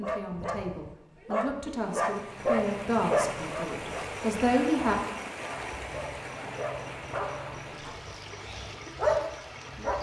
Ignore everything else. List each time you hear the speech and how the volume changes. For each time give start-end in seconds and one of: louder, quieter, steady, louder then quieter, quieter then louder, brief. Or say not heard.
0.0-5.0 louder.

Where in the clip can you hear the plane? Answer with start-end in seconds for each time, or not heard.
not heard.